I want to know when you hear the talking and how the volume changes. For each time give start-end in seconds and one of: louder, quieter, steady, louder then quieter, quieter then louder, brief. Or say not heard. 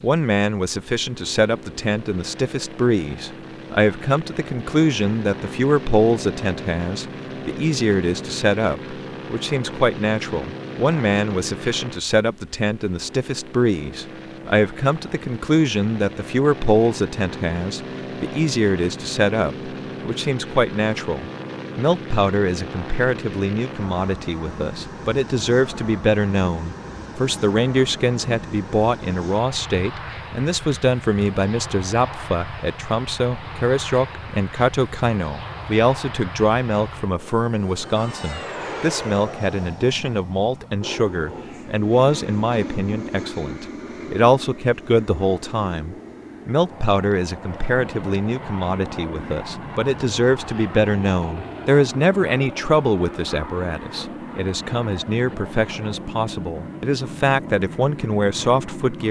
0.0-59.0 steady.